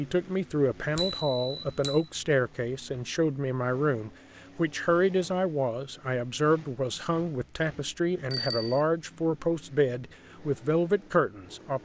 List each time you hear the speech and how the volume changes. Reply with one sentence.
You can hear the speech from 0.0 to 11.8 s, at a steady volume.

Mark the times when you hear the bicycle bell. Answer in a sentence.
The bicycle bell can be heard from 0.9 to 2.0 s and from 8.3 to 8.8 s.